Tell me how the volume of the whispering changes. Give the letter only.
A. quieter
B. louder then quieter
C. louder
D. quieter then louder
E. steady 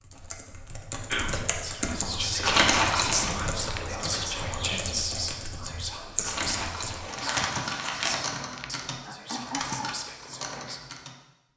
A.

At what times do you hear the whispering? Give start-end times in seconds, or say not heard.
1.1-10.8.